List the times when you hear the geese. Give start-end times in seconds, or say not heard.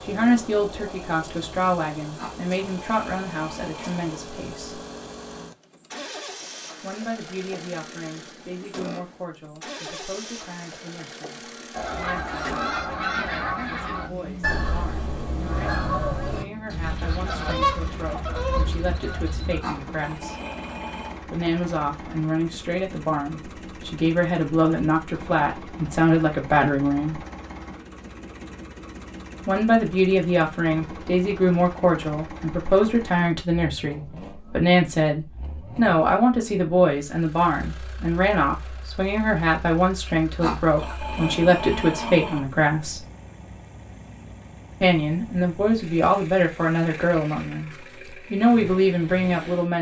11.7-19.6.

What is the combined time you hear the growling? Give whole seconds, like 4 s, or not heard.
6 s.